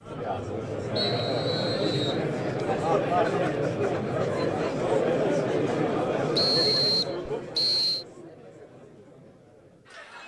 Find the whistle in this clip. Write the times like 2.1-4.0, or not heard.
0.9-2.2, 6.3-8.1.